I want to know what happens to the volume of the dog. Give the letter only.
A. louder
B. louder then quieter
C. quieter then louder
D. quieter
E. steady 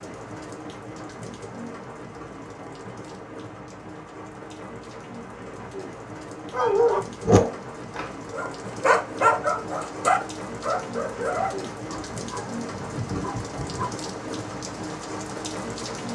D.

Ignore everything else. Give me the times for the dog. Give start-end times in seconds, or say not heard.
6.5-13.9.